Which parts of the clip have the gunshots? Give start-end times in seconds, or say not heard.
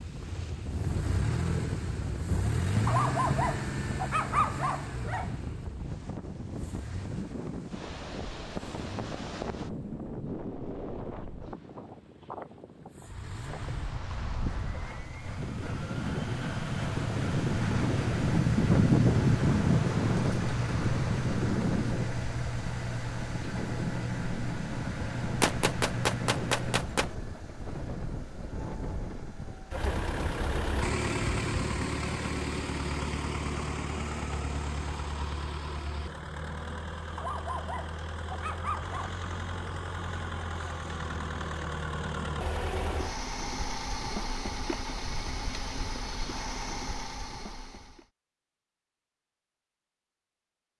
25.4-27.1.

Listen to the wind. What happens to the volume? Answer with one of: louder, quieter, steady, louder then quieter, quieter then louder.
louder then quieter.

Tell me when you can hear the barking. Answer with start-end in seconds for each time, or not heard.
2.9-5.3, 37.1-39.1.